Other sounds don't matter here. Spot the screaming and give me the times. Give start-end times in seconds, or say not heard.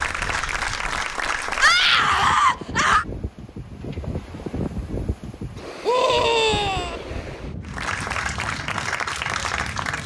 1.6-3.0, 5.8-7.0.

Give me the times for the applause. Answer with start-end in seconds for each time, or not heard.
0.0-2.0, 7.6-10.0.